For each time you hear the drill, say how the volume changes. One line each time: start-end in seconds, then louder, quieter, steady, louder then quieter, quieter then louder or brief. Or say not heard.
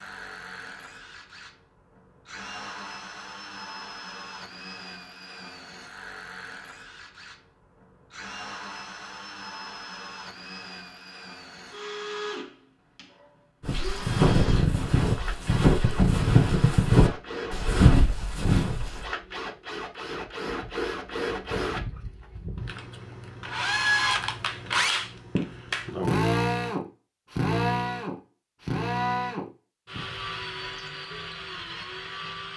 0.0-32.5 louder.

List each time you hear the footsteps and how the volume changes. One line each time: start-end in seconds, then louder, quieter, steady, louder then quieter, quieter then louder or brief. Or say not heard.
13.7-19.1 steady.